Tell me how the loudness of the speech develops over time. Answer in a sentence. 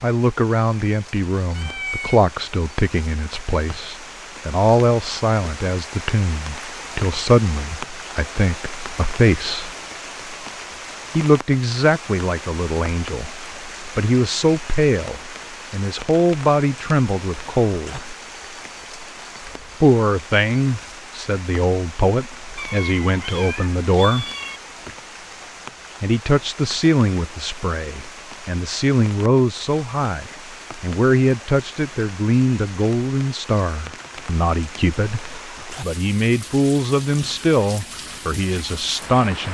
The volume of the speech stays about the same.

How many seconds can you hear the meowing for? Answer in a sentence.
The meowing can be heard for 3 seconds in total.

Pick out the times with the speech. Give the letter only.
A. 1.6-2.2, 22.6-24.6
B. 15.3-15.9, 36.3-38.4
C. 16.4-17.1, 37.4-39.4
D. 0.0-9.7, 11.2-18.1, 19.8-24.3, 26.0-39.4
D.